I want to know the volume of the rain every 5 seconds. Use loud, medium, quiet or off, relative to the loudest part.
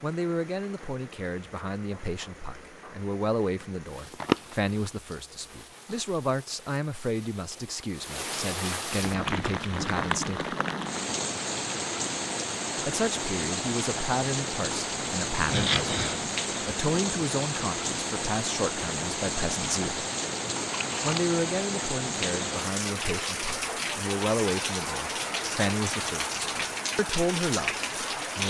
quiet, medium, loud, loud, loud, loud.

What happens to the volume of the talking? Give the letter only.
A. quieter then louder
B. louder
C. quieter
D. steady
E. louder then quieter
D.